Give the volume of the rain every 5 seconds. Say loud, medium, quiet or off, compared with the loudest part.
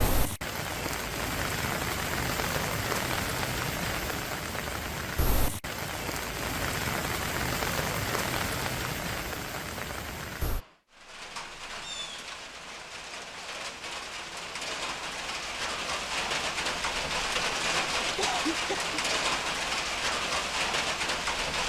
loud, loud, medium, loud, loud.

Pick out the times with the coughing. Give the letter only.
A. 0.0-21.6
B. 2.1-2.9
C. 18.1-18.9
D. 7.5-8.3
C.